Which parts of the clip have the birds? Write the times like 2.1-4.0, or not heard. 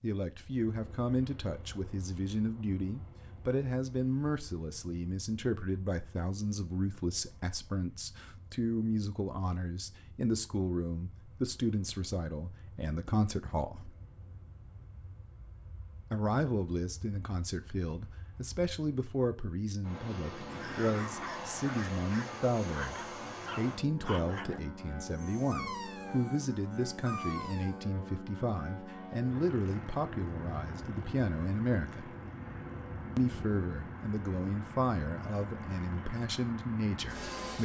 not heard.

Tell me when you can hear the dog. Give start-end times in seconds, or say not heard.
20.4-27.9.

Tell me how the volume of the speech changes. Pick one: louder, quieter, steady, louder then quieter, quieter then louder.
steady.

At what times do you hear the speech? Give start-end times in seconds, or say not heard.
0.0-13.9, 16.1-32.1, 33.1-37.6.